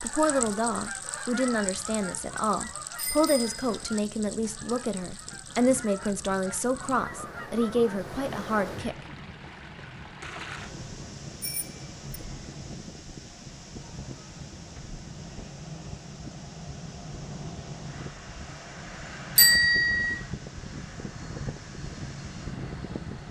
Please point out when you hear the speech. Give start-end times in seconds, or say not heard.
0.0-8.9.